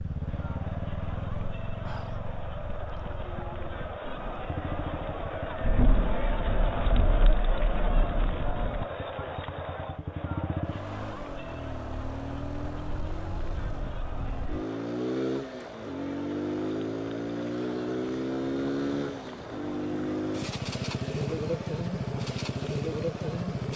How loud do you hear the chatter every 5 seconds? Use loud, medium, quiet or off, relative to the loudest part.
medium, loud, medium, medium, medium.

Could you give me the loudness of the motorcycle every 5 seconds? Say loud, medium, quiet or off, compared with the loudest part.
medium, quiet, medium, loud, loud.